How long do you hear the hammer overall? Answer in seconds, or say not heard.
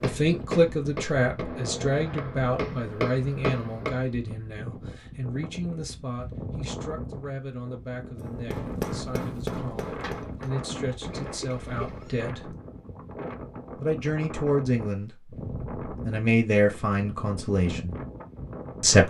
6 s.